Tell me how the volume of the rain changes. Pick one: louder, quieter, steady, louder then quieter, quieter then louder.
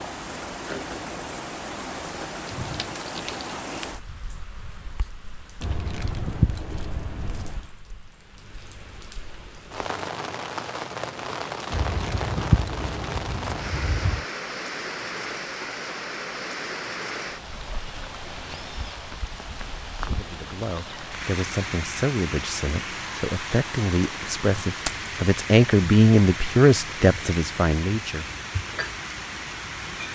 steady.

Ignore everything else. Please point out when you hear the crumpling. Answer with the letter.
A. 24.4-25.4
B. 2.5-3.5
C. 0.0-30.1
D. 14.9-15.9
B.